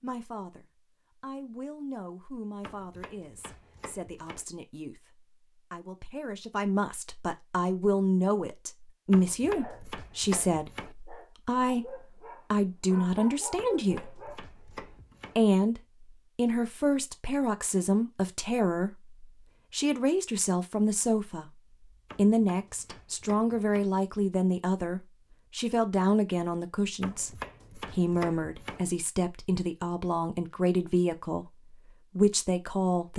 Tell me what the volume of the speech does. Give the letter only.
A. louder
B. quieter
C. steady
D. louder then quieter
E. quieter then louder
A.